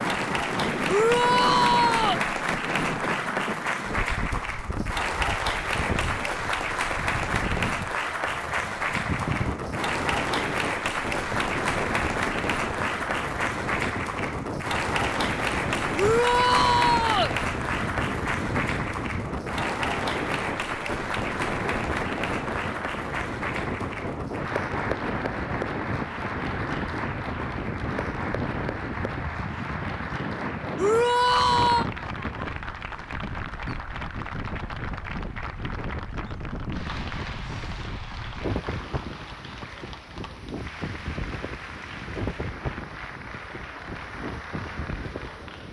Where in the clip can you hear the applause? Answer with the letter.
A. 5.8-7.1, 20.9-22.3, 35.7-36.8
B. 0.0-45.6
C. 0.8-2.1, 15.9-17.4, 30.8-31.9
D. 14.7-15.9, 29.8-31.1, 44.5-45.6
B.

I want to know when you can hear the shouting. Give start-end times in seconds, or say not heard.
0.8-2.1, 15.9-17.4, 30.8-31.9.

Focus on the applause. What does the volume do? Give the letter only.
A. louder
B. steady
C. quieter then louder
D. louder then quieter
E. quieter
E.